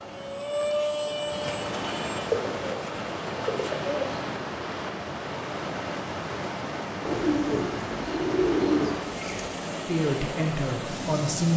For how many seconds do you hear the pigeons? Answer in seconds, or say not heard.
5 s.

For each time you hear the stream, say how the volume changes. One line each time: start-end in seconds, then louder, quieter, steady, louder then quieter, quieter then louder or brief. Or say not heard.
0.0-11.5 steady.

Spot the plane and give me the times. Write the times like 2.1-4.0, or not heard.
0.0-2.2.